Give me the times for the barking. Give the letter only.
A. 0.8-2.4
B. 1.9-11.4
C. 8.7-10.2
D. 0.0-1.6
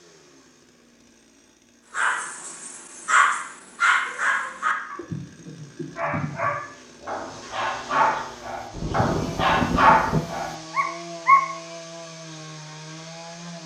B.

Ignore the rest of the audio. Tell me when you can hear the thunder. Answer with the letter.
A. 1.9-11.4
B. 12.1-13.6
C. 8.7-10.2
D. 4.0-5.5
C.